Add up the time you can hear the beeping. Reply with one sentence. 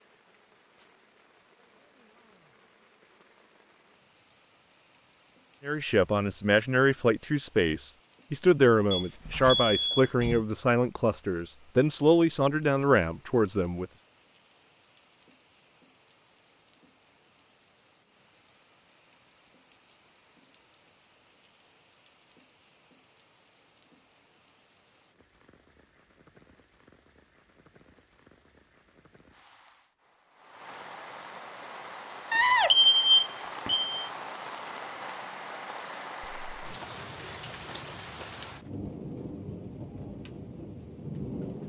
You can hear the beeping for 3 seconds altogether.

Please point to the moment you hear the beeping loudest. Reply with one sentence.
The volume of the beeping peaks at 33 seconds.